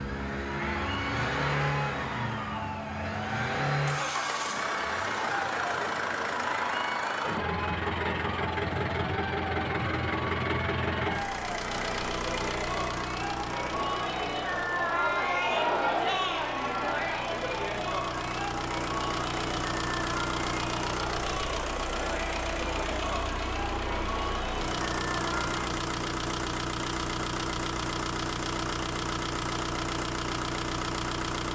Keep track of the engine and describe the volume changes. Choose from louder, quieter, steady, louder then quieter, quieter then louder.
quieter then louder.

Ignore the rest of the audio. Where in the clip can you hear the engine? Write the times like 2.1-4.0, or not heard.
0.0-31.5.